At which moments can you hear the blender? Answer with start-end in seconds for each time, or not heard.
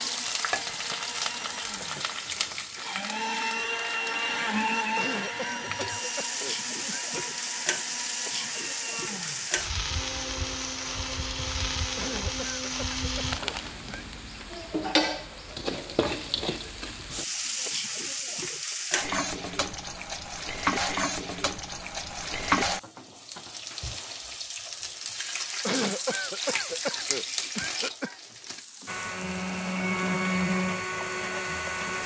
0.0-13.4, 28.9-32.0.